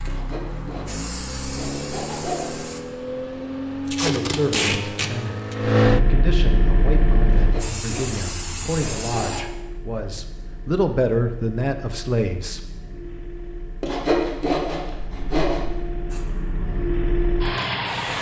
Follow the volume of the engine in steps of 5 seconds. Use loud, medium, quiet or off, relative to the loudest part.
medium, loud, quiet, loud.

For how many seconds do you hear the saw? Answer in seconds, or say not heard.
7 s.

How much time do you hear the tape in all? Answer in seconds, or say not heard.
2 s.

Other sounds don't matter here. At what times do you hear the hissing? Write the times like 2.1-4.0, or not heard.
0.0-2.8, 6.8-9.4, 16.1-18.1.